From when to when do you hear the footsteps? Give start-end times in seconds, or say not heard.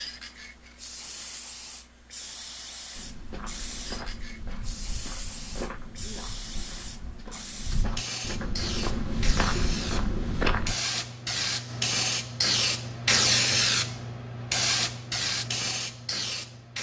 3.0-10.8.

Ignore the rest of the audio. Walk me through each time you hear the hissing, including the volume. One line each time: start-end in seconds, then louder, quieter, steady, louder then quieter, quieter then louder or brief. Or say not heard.
0.0-16.7 louder.